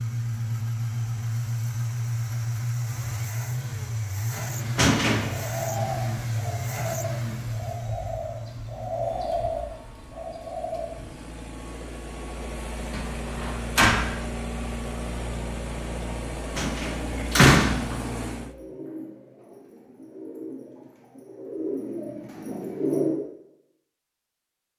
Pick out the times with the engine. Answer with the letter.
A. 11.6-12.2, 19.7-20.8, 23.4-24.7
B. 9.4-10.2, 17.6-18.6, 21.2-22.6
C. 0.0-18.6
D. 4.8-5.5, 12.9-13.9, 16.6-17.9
C.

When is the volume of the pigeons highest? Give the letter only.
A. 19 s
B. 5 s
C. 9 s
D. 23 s
D.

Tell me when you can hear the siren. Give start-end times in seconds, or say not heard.
not heard.